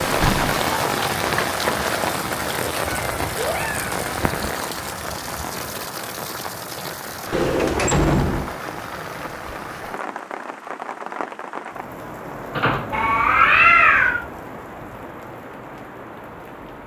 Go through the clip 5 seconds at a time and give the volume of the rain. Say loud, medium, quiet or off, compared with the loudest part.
loud, medium, medium, quiet.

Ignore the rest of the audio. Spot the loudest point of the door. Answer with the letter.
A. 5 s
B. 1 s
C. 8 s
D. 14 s
C.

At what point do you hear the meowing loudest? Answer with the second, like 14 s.
14 s.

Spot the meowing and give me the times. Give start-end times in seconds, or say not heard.
2.9-4.5, 12.9-14.2.